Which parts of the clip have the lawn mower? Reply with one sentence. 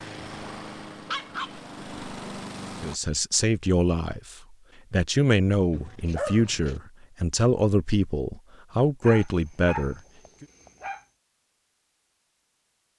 The lawn mower can be heard from 0.0 to 3.0 s.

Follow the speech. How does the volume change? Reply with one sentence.
The loudness of the speech stays about the same.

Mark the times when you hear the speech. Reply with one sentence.
You can hear the speech from 2.8 to 10.4 s.